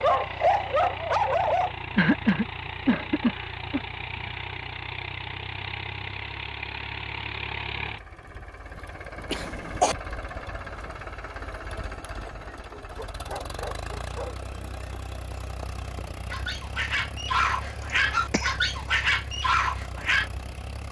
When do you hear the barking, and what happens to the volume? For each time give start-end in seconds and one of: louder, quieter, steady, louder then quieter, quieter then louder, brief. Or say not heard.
0.0-1.7 brief
12.6-20.3 quieter then louder.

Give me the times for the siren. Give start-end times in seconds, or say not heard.
not heard.